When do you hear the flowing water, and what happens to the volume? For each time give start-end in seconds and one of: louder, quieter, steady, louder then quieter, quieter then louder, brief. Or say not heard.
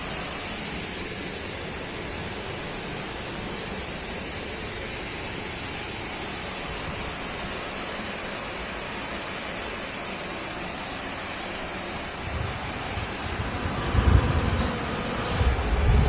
0.0-16.0 steady.